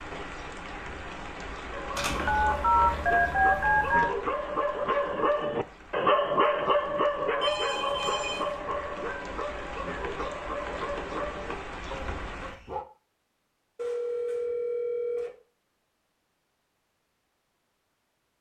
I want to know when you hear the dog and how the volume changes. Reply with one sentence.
You can hear the dog from 1.6 to 12.8 s, getting louder then quieter.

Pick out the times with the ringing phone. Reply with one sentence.
The ringing phone can be heard from 1.9 to 4.1 s, from 7.4 to 8.6 s and from 13.8 to 15.3 s.